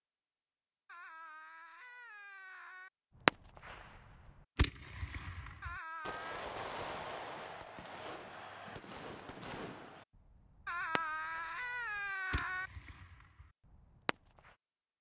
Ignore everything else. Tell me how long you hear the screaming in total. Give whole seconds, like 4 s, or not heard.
5 s.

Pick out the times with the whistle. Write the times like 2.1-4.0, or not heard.
not heard.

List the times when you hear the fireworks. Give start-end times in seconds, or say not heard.
3.2-14.6.